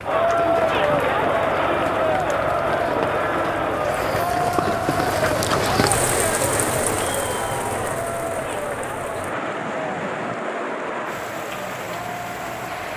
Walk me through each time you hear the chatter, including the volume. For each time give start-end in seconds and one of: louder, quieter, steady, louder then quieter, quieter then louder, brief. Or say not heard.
0.0-12.9 quieter.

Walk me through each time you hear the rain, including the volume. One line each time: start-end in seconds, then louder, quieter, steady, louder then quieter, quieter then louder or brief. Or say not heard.
0.0-12.9 louder then quieter.